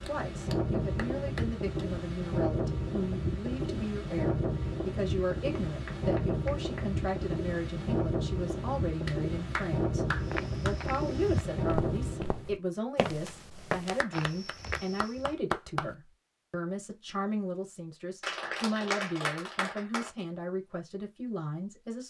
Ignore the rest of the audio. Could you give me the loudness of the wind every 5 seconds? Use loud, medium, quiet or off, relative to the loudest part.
loud, loud, loud, off, off.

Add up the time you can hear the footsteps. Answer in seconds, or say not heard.
5 s.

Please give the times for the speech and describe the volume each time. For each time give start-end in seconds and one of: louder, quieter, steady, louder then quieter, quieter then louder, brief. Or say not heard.
0.0-22.0 steady.